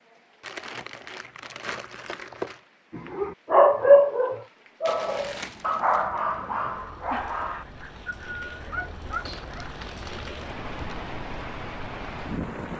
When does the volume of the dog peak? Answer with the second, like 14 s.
4 s.